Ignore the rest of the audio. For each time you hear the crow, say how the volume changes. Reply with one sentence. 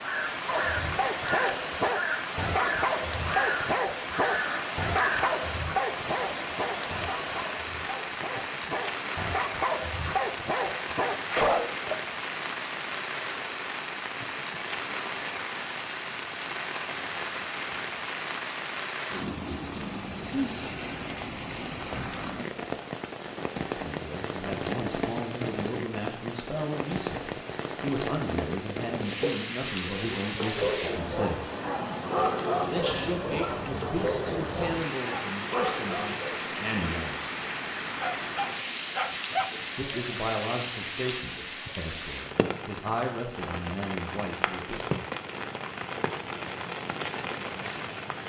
You can hear the crow from 0.0 to 5.3 s, at a steady volume.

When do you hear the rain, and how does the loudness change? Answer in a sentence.
The rain can be heard from 0.0 to 48.2 s, at a steady volume.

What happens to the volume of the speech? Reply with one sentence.
The volume of the speech stays about the same.